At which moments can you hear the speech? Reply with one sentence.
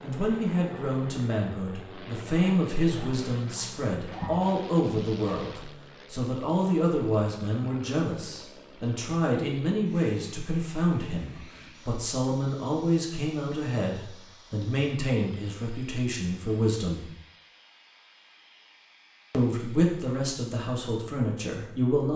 The speech can be heard from 0.0 to 17.1 s and from 19.3 to 22.1 s.